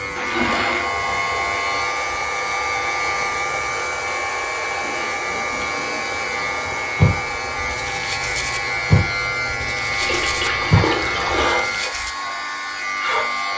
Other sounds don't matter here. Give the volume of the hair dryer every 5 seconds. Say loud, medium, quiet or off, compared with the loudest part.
loud, loud, medium.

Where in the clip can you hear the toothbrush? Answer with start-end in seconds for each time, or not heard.
7.0-12.1.